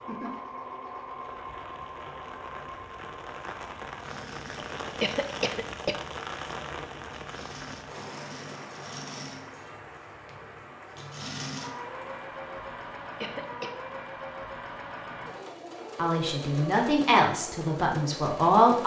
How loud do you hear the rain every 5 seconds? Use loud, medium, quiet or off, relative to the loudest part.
loud, loud, medium, off.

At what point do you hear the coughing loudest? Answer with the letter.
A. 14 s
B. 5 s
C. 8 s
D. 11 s
B.